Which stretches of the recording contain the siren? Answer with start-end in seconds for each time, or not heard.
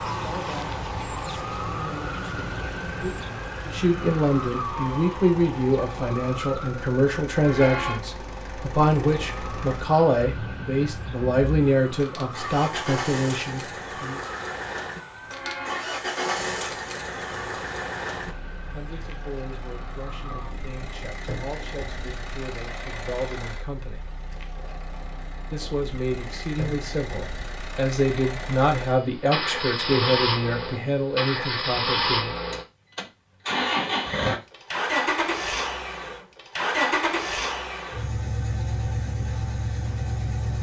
0.0-20.6.